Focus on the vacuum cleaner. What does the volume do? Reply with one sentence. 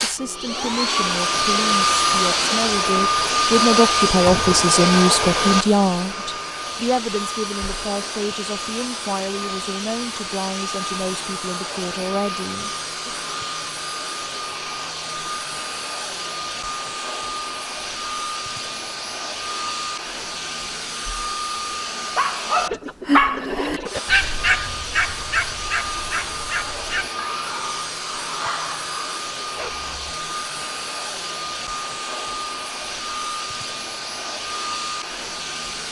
The volume of the vacuum cleaner goes down.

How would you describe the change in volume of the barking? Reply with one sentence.
The loudness of the barking goes down.